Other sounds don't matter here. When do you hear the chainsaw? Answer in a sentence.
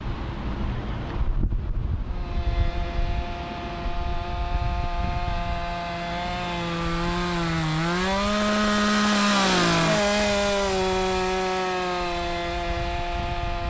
The chainsaw can be heard from 2.0 to 13.6 s.